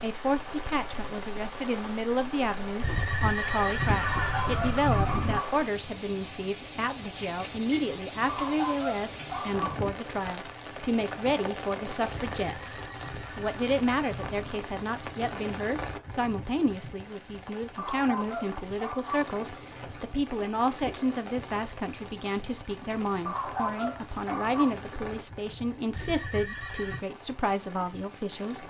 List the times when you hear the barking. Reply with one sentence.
You can hear the barking from 4.0 to 5.5 s, from 8.2 to 9.8 s, from 17.8 to 19.2 s and from 23.2 to 24.8 s.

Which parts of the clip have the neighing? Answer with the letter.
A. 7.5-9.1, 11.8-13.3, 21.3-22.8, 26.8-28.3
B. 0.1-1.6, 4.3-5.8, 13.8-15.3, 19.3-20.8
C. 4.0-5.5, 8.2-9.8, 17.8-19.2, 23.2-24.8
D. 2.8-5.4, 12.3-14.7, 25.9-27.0
D.